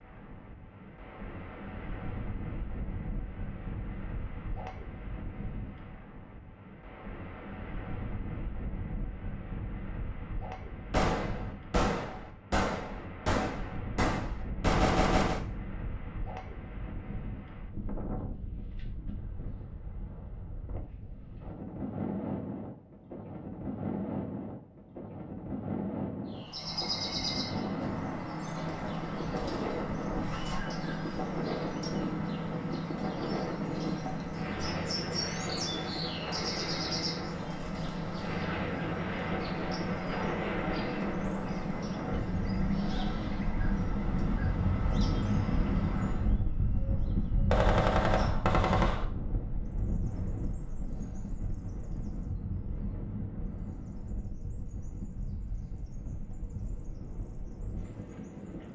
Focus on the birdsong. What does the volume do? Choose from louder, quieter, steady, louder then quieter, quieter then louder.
quieter.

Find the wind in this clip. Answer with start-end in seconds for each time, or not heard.
0.0-58.6.